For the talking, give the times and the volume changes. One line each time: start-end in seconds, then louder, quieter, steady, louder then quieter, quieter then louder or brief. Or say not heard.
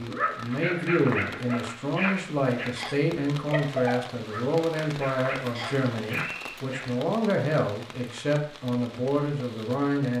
0.0-10.1 steady.